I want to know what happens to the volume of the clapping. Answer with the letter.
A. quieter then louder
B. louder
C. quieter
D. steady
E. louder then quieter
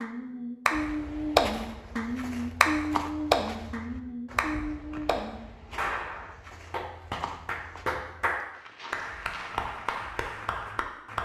C.